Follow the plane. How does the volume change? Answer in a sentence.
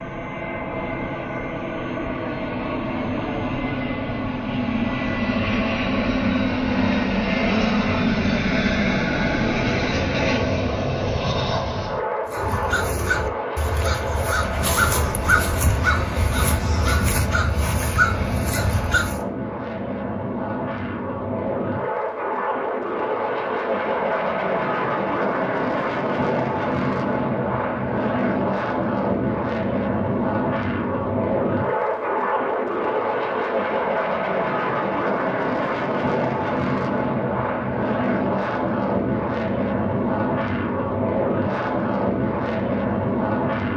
The loudness of the plane stays about the same.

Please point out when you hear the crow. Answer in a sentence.
You can hear the crow from 12.2 to 19.2 s.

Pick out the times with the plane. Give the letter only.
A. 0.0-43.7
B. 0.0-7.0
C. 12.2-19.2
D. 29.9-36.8
A.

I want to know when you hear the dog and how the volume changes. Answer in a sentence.
You can't hear the dog here.